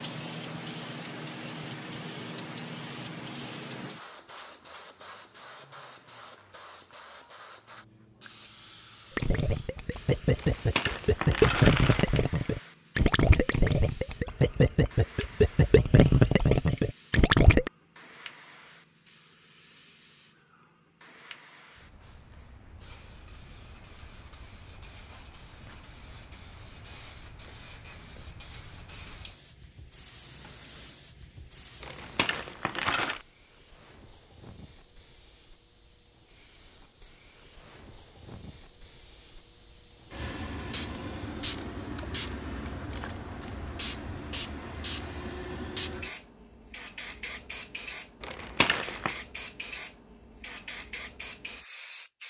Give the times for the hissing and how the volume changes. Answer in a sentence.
You can hear the hissing from 0.0 to 52.2 s, getting quieter then louder.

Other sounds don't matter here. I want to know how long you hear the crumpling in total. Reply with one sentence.
You can hear the crumpling for 4 seconds altogether.